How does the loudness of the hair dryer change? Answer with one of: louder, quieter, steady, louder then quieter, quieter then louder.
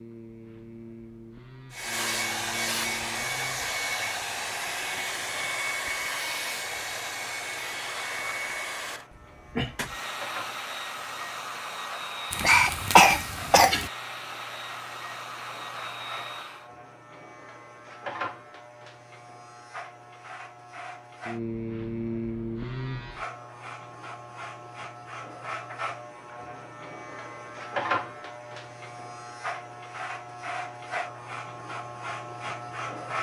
quieter.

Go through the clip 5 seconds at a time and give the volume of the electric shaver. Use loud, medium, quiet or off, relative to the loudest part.
medium, quiet, medium, medium, loud, loud, loud.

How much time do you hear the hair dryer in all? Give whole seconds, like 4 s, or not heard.
15 s.